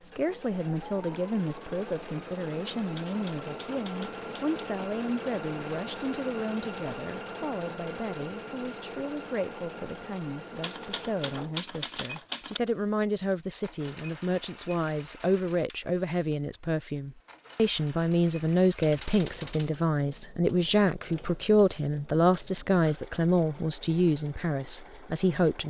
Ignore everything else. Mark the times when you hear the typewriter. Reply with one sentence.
The typewriter can be heard from 2.8 to 4.6 s, from 10.6 to 12.6 s and from 18.8 to 19.8 s.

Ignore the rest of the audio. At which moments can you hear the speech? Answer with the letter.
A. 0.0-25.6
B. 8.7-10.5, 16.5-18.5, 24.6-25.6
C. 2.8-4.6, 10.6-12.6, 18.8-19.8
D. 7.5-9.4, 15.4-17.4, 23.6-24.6
A.